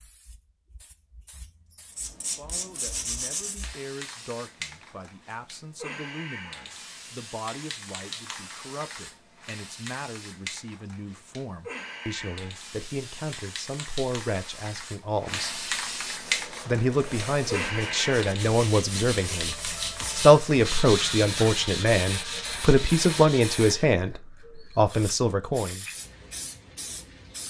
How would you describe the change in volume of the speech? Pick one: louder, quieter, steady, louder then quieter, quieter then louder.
louder.